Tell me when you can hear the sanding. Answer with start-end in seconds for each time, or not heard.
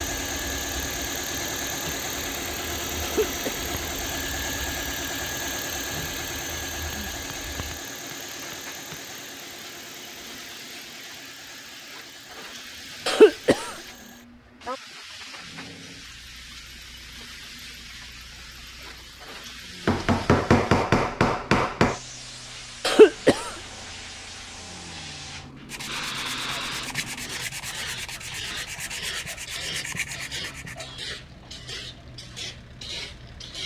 25.6-30.9.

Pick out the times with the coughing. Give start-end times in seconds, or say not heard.
3.0-3.5, 13.1-13.7, 22.9-23.5.